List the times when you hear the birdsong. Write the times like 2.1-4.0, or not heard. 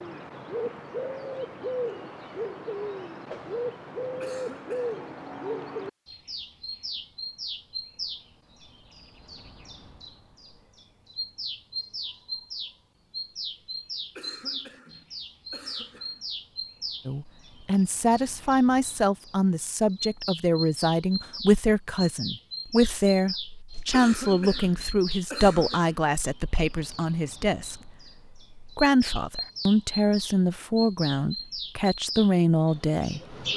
0.0-33.5.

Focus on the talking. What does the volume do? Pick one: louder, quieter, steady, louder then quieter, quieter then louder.
steady.